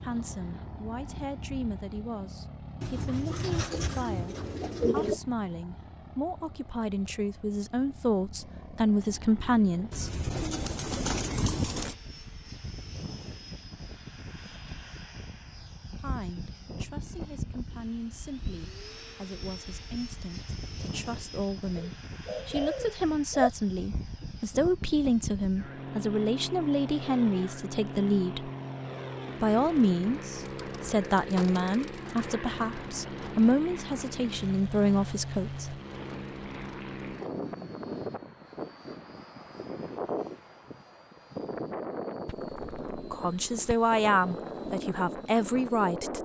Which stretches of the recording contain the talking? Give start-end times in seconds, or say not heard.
0.0-10.2, 15.9-28.5, 29.4-35.8, 43.0-46.2.